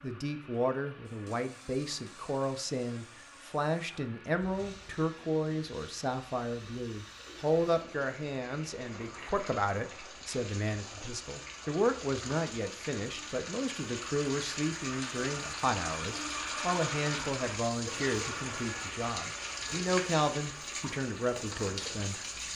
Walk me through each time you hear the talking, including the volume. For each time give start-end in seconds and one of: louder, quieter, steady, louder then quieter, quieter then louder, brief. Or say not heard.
0.0-22.5 steady.